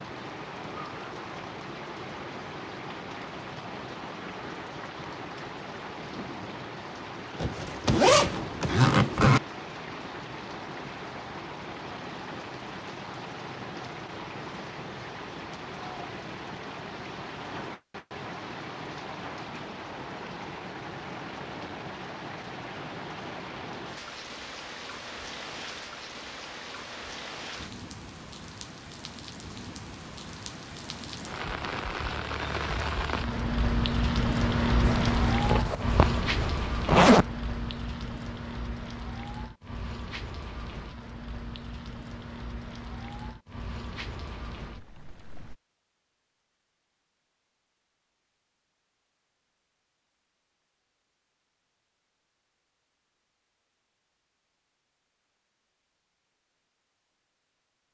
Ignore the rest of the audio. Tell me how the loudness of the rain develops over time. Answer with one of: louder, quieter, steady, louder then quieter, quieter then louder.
louder then quieter.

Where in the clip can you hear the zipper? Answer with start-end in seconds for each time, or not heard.
7.4-9.4, 34.8-37.2.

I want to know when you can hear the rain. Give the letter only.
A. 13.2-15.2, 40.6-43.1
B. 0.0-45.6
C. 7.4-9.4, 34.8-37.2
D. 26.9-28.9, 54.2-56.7
B.